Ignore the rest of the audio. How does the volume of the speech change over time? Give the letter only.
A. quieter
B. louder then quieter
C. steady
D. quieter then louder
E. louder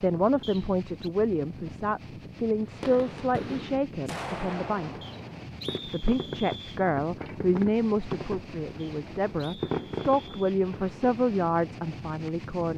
C.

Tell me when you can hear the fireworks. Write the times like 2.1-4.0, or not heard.
2.6-11.2.